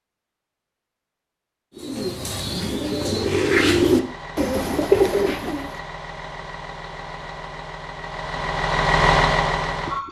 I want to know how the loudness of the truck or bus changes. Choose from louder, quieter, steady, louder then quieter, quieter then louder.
louder.